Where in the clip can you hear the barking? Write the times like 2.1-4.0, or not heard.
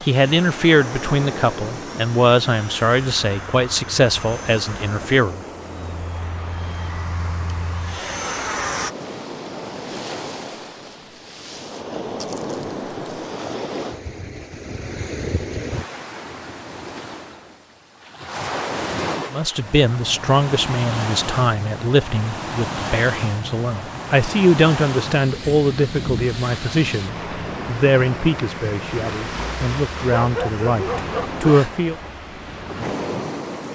30.1-31.8.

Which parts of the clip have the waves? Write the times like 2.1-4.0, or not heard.
0.0-33.6.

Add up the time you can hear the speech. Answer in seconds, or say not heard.
18 s.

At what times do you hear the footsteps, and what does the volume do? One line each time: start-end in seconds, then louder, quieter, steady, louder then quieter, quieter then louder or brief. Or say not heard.
not heard.